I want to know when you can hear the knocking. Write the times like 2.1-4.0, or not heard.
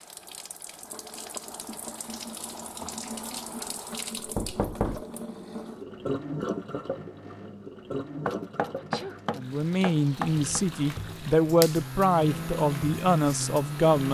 3.0-3.6, 4.2-5.0, 8.2-10.6.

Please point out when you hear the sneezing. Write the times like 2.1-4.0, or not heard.
8.8-9.2.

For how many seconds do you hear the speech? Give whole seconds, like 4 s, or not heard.
5 s.